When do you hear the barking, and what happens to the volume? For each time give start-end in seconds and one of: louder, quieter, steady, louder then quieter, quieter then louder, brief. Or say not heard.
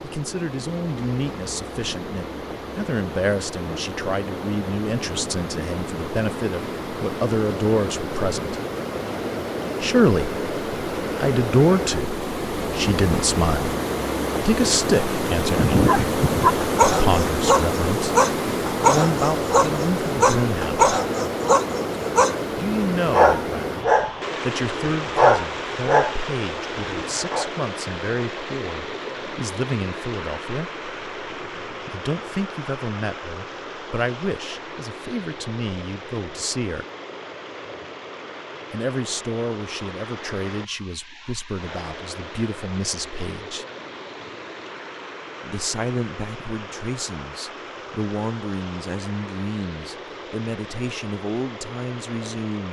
15.3-27.5 steady.